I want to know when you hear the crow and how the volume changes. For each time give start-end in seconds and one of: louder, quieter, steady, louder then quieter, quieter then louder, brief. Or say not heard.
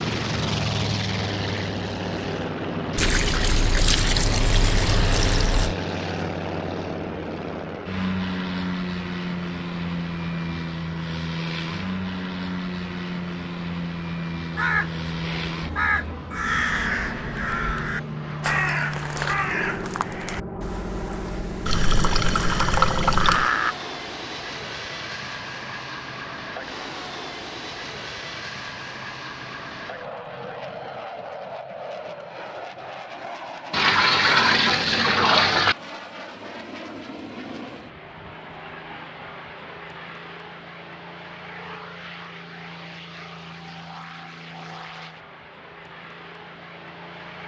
14.6-23.8 quieter then louder.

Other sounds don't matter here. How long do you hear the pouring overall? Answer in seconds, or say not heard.
7 s.